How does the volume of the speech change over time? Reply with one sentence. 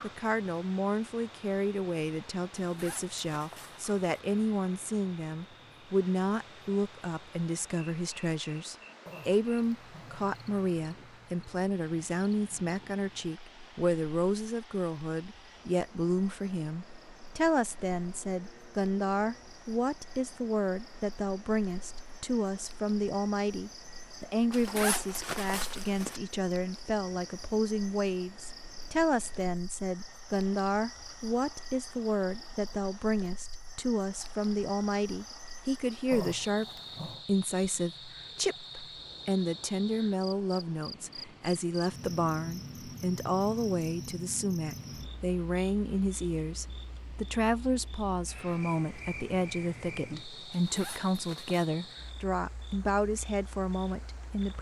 The volume of the speech stays about the same.